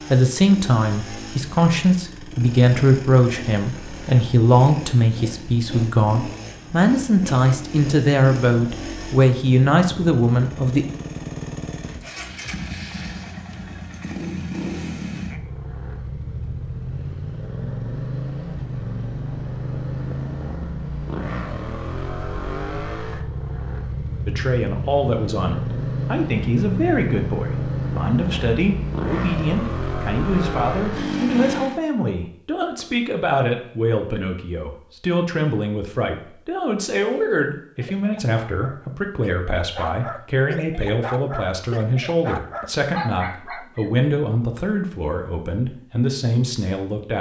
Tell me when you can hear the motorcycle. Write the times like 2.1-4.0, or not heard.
0.0-31.8.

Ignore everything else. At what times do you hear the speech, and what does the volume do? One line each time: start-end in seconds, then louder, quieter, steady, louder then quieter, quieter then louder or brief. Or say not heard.
0.1-10.8 steady
24.2-47.1 steady.